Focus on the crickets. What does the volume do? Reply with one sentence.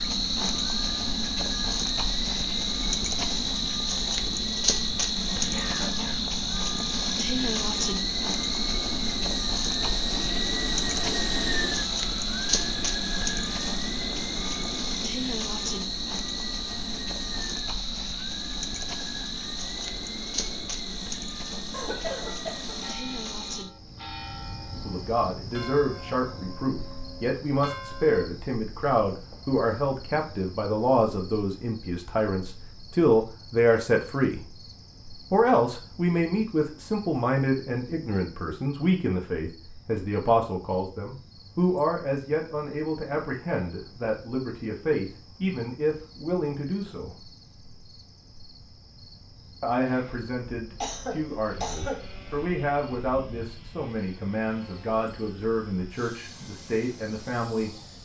The loudness of the crickets goes down.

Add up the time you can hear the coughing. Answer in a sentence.
The coughing can be heard for 3 seconds in total.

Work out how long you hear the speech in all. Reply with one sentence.
The speech can be heard for 30 seconds in total.